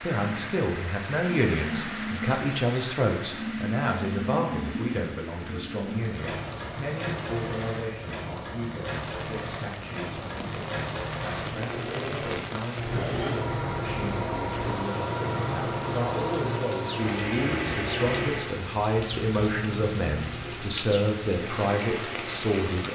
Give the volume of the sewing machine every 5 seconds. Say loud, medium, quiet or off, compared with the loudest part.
loud, medium, loud, loud, medium.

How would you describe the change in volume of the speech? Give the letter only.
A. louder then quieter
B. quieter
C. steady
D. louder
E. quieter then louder
E.